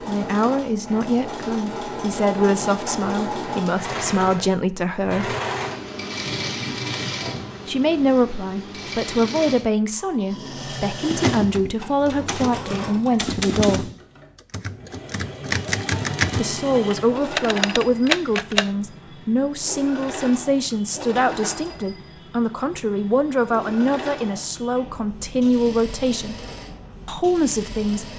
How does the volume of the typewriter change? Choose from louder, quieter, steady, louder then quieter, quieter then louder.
quieter then louder.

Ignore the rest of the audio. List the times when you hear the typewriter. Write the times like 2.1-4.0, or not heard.
10.3-18.7.